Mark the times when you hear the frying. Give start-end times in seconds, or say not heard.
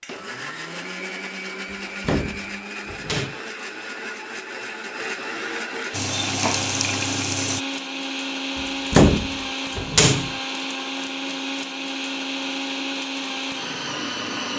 5.9-7.7.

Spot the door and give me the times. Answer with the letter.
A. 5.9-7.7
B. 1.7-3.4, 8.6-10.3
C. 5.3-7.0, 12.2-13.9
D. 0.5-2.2
B.